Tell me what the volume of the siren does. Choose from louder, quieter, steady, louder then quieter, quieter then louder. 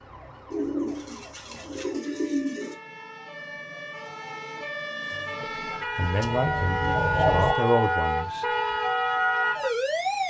louder.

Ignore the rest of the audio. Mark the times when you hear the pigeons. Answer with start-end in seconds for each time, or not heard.
0.5-2.8, 6.0-7.5.